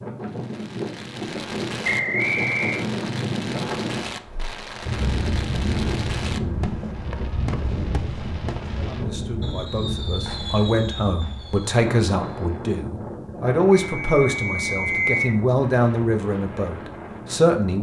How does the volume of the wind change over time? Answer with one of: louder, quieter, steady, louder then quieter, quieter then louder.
quieter.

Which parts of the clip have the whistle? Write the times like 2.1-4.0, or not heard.
1.8-2.9, 13.8-15.4.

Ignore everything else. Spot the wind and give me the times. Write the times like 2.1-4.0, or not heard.
0.0-17.7.